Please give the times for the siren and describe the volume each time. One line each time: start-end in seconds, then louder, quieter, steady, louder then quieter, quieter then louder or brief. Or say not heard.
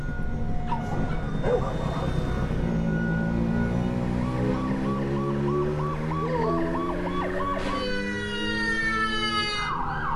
0.0-10.1 louder.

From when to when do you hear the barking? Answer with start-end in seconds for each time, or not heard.
0.7-2.2, 6.2-7.8.